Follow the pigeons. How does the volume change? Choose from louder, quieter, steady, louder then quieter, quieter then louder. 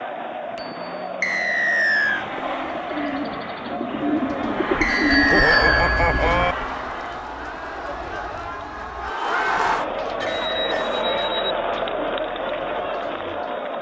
quieter.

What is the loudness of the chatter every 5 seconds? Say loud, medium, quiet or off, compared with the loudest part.
medium, loud, loud.